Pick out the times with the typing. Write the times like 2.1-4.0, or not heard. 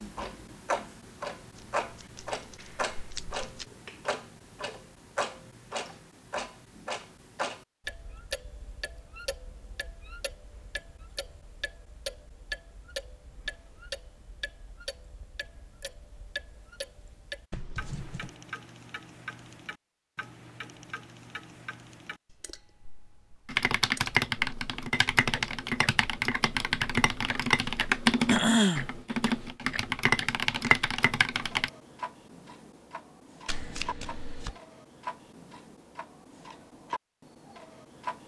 23.4-31.7.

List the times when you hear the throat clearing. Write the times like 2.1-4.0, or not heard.
28.2-28.9.